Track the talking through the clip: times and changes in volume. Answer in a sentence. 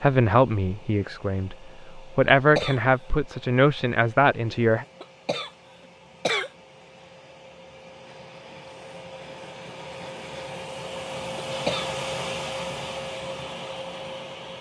The talking can be heard from 0.0 to 4.8 s, getting quieter then louder.